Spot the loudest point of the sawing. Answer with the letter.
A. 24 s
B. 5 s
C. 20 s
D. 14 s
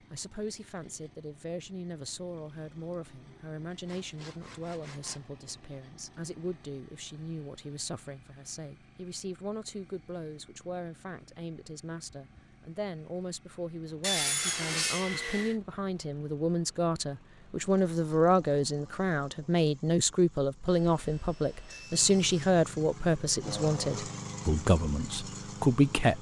D.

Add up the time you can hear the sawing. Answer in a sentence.
The sawing can be heard for 5 seconds in total.